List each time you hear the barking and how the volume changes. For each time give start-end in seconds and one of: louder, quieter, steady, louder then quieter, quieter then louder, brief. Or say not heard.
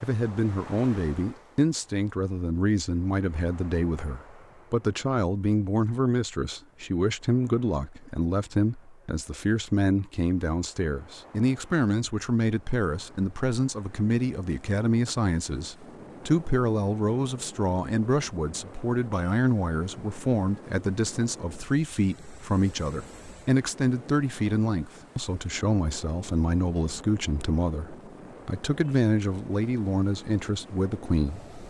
not heard.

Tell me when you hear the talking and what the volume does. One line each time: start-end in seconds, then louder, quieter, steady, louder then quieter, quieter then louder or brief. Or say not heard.
0.0-31.4 steady.